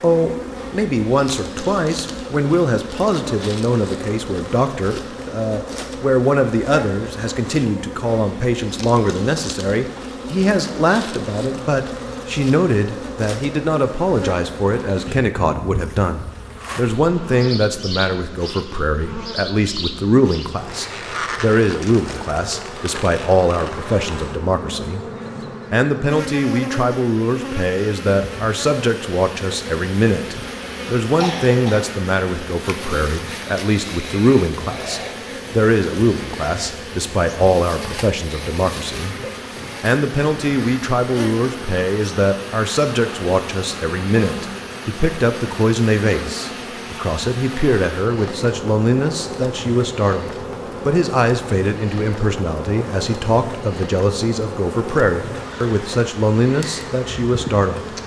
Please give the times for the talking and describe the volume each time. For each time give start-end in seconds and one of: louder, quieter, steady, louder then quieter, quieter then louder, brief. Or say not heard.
0.0-58.0 steady.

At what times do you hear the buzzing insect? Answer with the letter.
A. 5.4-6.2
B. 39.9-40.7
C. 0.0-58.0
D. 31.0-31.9
C.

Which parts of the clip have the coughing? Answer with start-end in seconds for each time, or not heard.
31.0-31.9.